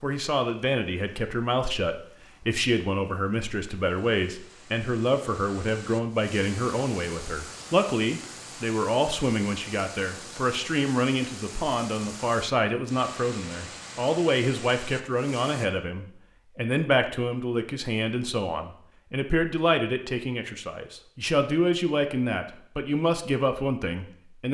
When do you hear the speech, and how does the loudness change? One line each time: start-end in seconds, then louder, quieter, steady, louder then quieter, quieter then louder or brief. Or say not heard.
0.0-24.4 steady.